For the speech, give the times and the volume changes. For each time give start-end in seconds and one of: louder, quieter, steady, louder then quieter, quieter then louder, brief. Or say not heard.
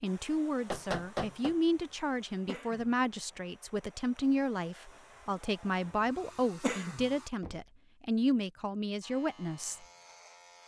0.0-9.8 steady.